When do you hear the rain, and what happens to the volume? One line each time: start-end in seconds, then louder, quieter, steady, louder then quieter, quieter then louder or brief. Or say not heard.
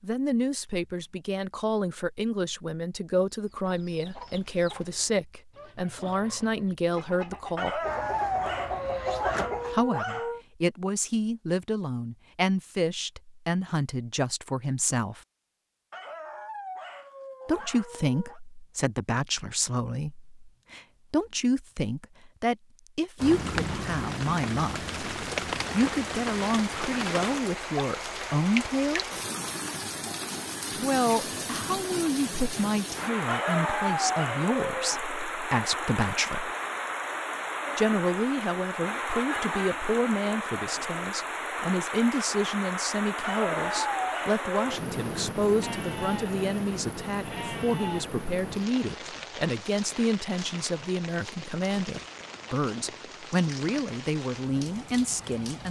23.1-55.6 quieter.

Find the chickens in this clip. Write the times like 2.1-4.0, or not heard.
3.3-9.8.